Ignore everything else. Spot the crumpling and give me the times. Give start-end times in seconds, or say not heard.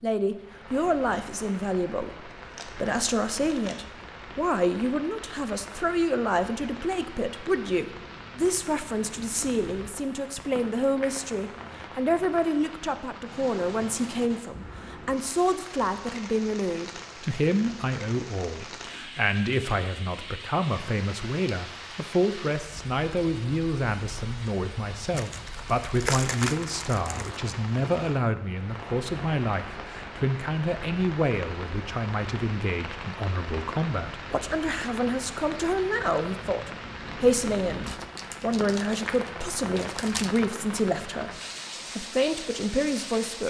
2.4-3.8, 25.1-27.4, 37.9-40.5.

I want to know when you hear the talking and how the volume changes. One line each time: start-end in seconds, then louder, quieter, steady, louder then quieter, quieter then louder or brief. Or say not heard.
0.0-41.4 steady
42.0-43.4 brief.